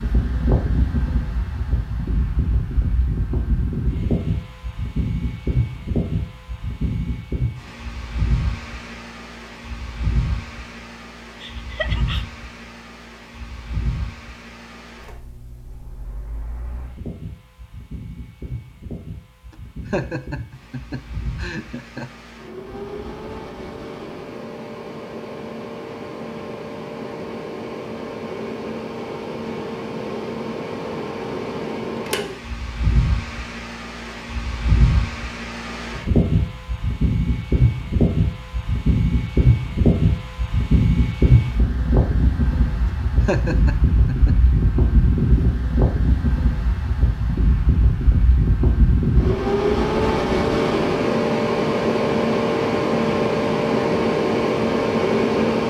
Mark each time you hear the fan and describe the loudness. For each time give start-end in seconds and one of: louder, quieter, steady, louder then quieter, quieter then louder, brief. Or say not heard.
0.0-55.6 quieter then louder.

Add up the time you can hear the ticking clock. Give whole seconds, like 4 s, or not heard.
not heard.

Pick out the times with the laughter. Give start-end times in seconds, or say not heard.
11.4-12.2, 19.5-22.1, 42.9-44.4.